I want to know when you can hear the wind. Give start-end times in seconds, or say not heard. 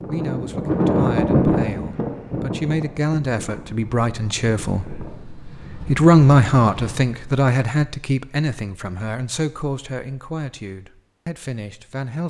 0.0-7.3.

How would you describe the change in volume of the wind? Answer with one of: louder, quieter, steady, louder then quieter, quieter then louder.
quieter.